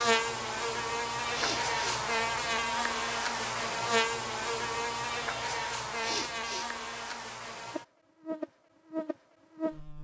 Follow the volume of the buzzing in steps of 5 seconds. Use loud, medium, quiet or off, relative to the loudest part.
loud, medium.